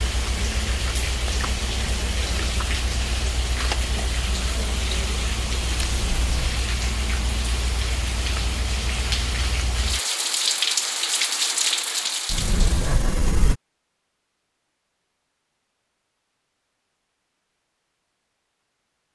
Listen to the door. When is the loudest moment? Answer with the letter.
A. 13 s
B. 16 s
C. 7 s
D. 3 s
A.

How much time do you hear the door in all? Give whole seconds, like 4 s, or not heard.
2 s.